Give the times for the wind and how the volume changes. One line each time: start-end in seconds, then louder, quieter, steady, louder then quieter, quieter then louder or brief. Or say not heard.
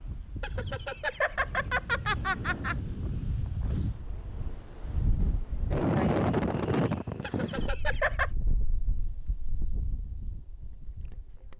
0.0-11.5 louder then quieter.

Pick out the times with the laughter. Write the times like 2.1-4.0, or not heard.
0.4-2.8, 7.2-8.3.